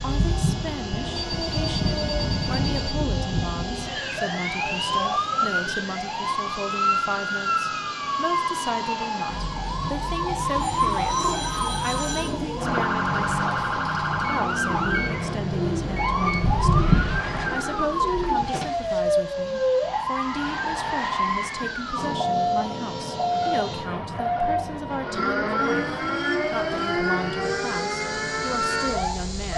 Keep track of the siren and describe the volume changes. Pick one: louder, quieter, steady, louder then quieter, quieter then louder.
steady.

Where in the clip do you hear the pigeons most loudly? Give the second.
17 s.